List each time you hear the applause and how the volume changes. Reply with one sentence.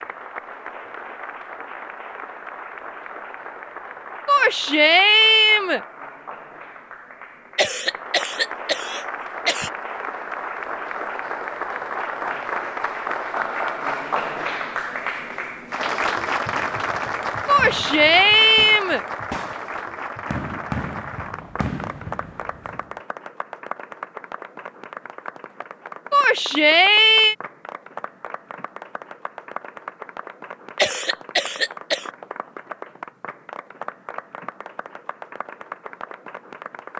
The applause can be heard from 0.0 to 36.9 s, getting louder then quieter.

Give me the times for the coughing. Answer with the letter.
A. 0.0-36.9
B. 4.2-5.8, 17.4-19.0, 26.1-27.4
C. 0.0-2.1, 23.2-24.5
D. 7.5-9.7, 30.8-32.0
D.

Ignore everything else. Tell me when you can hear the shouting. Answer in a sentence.
The shouting can be heard from 4.2 to 5.8 s, from 17.4 to 19.0 s and from 26.1 to 27.4 s.